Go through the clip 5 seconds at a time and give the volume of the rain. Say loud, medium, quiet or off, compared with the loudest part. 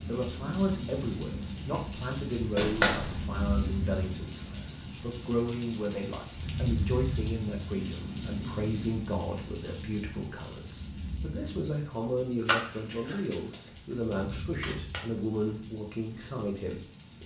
loud, loud, medium, quiet.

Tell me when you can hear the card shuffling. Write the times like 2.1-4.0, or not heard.
2.5-3.2, 12.4-15.1.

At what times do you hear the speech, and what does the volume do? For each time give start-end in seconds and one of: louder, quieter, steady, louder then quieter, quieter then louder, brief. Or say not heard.
0.1-17.2 steady.